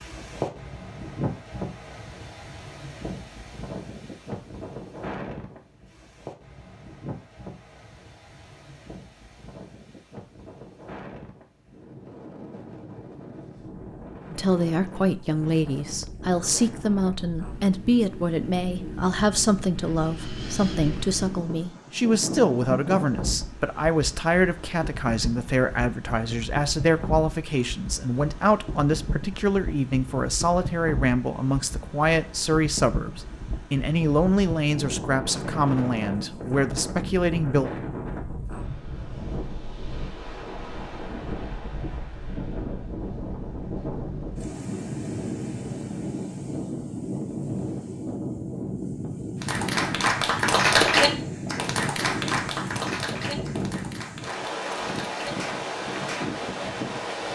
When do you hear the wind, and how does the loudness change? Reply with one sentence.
You can hear the wind from 0.0 to 57.2 s, getting louder.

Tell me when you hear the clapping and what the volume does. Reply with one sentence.
You can hear the clapping from 49.4 to 56.4 s, getting quieter.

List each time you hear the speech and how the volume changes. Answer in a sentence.
You can hear the speech from 14.3 to 37.7 s, at a steady volume.